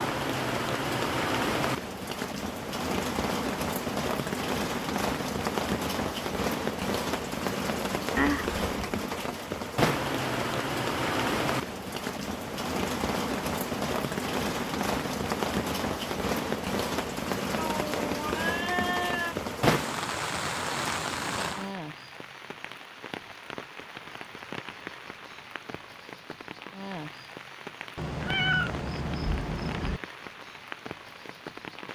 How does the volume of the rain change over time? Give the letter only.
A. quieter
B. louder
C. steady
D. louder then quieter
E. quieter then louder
A.